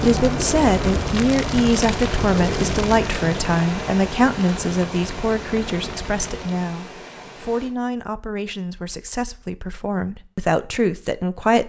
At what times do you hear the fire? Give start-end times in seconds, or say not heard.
0.0-6.7.